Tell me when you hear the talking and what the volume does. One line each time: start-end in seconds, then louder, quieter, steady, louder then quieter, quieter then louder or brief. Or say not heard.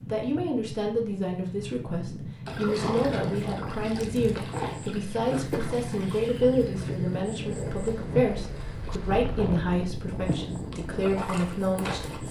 0.1-12.2 steady.